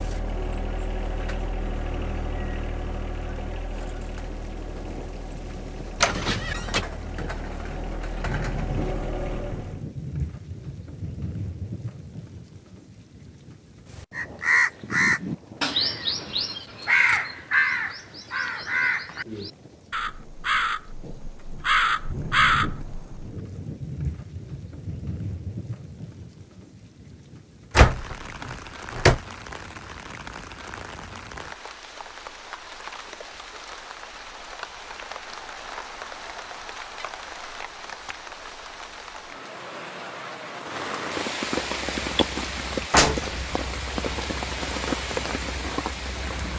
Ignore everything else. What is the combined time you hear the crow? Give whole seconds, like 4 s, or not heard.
9 s.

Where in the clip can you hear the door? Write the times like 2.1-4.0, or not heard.
6.0-6.8, 27.8-29.2, 42.9-44.1.